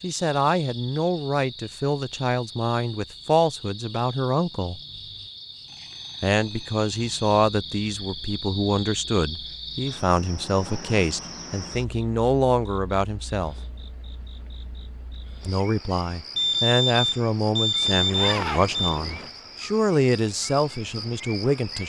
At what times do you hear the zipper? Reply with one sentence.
You can hear the zipper from 17.8 to 19.3 s.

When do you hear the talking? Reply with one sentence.
You can hear the talking from 0.0 to 4.8 s, from 6.2 to 13.6 s and from 15.4 to 21.8 s.